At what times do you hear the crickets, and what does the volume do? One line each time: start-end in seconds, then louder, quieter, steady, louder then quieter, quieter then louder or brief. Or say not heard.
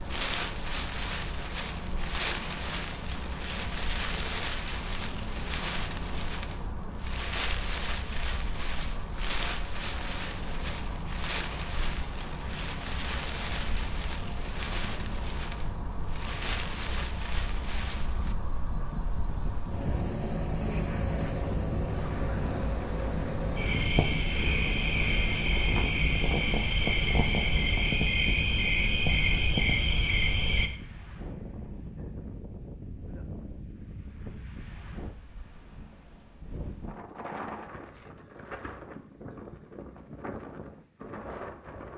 0.0-30.7 louder.